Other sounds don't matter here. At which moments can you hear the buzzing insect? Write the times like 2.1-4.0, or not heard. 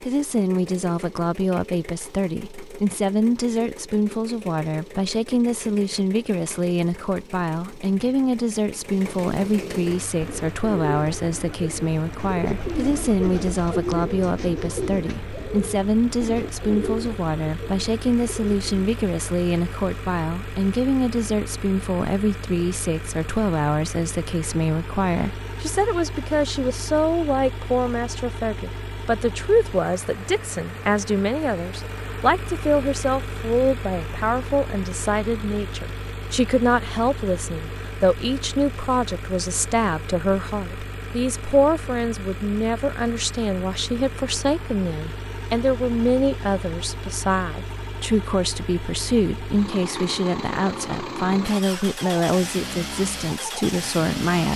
not heard.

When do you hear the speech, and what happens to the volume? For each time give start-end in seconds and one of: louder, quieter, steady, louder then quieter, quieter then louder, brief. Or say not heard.
0.0-54.5 steady.